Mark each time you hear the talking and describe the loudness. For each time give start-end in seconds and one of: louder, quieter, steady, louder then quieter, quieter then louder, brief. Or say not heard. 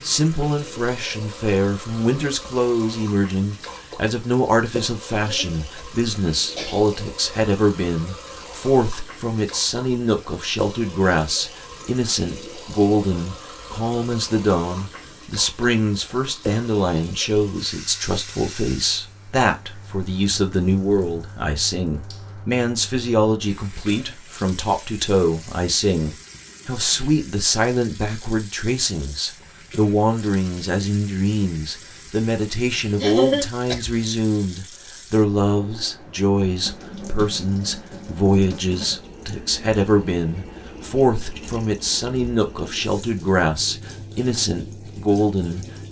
0.0-45.6 steady.